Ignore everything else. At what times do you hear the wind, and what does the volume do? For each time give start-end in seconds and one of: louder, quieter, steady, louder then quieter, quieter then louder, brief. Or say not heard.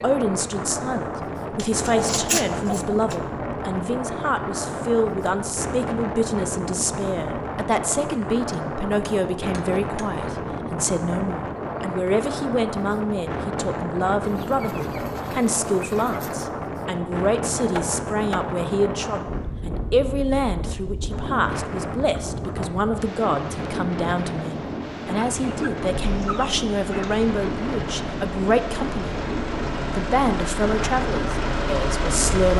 0.0-32.5 steady.